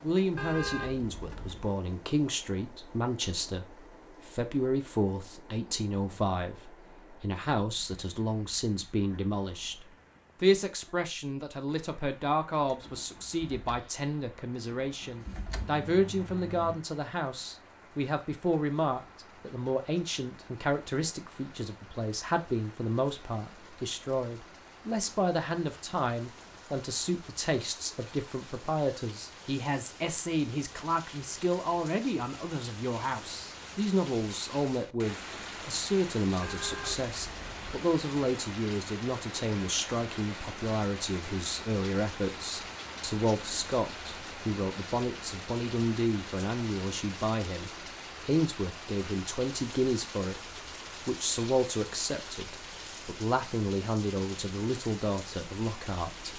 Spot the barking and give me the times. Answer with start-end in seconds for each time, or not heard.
not heard.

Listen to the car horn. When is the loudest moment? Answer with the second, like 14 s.
1 s.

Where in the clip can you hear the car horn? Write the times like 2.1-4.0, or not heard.
0.3-1.8, 36.4-37.9.